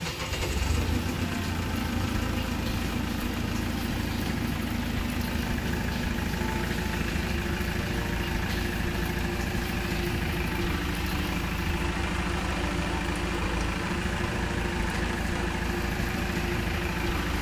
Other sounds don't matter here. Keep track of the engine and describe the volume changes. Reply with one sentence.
The volume of the engine stays about the same.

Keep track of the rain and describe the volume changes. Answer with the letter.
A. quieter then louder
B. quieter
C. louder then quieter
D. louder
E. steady
E.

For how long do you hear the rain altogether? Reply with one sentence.
The rain can be heard for 17 seconds in total.